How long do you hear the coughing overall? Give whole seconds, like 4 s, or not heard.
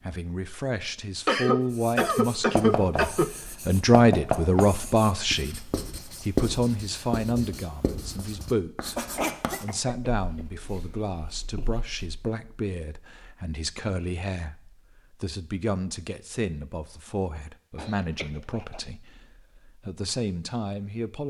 5 s.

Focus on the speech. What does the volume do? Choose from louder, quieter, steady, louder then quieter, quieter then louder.
quieter.